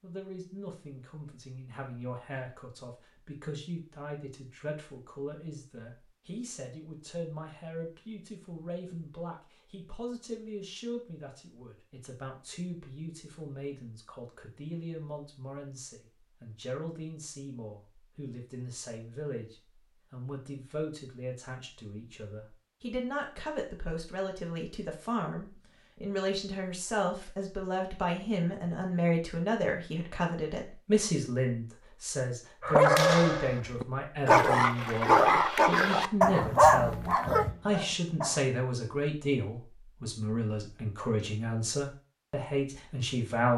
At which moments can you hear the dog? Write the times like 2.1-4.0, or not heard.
32.6-38.5.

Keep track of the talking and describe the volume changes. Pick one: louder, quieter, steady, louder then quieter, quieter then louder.
louder.